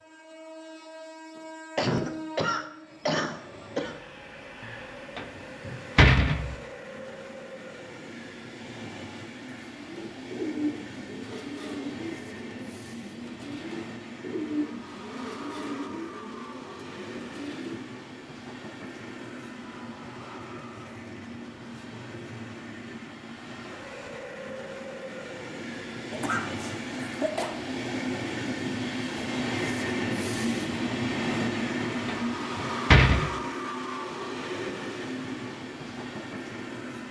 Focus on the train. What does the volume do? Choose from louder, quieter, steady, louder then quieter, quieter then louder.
louder.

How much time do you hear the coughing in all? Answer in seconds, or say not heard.
4 s.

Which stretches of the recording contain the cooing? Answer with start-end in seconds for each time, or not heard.
9.7-17.8.